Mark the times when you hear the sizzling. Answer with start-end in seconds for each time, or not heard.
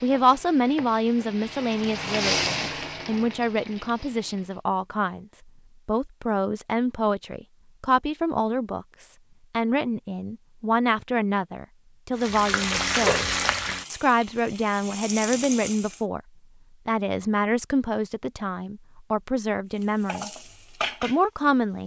0.0-4.6, 12.2-16.0, 19.8-21.8.